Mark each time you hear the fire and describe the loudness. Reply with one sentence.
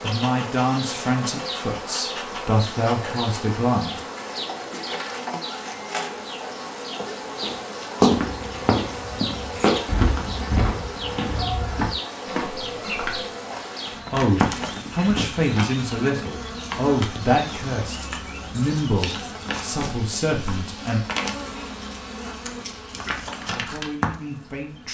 The fire can't be heard in this clip.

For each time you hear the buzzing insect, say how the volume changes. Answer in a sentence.
The buzzing insect can be heard from 0.0 to 24.8 s, at a steady volume.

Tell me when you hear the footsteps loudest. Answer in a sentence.
The loudest moment of the footsteps is at 8 seconds.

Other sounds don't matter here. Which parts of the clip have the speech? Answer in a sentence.
You can hear the speech from 0.0 to 4.0 s, from 14.1 to 21.0 s and from 23.4 to 24.8 s.